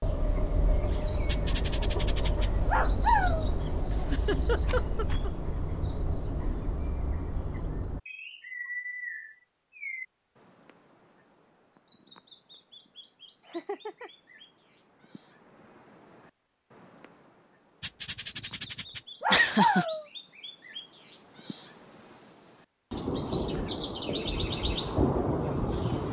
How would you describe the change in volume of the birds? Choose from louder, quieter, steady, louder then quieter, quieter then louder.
quieter then louder.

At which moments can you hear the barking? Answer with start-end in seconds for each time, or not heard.
1.2-3.5, 17.8-20.1.